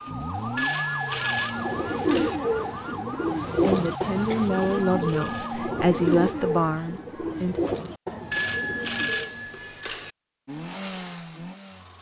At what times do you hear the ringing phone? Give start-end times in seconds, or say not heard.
0.6-2.4, 4.5-6.3, 8.3-10.1.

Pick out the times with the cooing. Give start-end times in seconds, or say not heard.
1.0-9.6.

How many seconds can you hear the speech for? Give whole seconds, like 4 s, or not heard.
4 s.